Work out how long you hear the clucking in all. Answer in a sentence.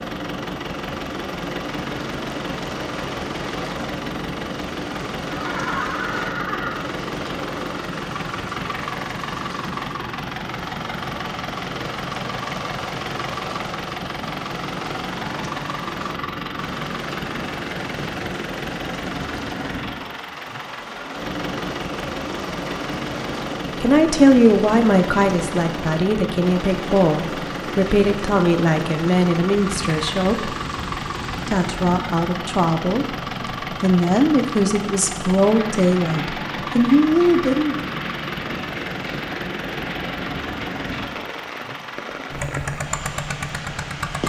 You can't hear the clucking here.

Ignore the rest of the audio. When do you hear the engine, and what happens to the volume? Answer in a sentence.
You can hear the engine from 0.0 to 44.2 s, at a steady volume.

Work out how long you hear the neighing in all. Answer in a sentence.
The neighing can be heard for 2 seconds in total.